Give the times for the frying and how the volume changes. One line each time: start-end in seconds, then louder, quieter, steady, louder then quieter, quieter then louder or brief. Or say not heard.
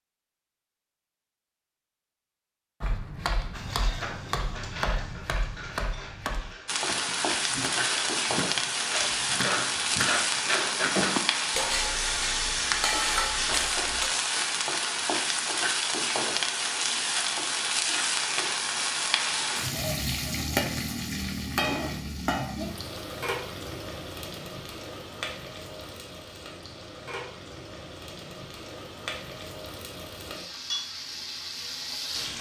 6.7-32.3 quieter.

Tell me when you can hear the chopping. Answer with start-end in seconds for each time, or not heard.
2.8-10.2.